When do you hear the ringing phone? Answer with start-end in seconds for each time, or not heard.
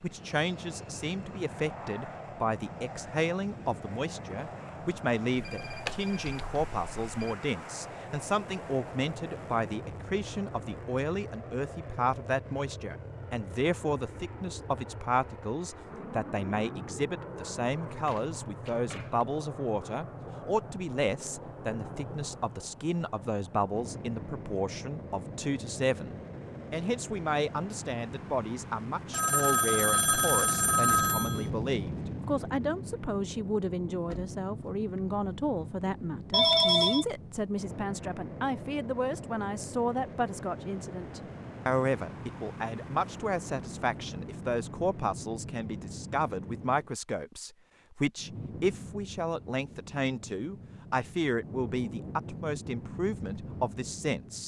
5.3-7.3, 29.1-31.4, 36.3-37.0.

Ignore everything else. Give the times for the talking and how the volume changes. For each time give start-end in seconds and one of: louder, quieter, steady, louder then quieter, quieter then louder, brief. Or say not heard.
0.0-54.4 steady.